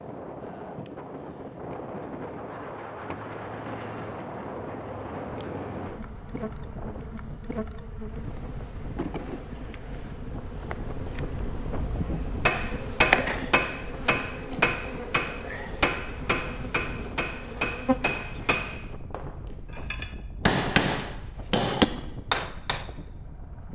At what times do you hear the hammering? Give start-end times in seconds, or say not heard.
12.4-22.9.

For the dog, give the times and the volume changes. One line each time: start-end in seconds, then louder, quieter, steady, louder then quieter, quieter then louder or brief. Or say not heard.
not heard.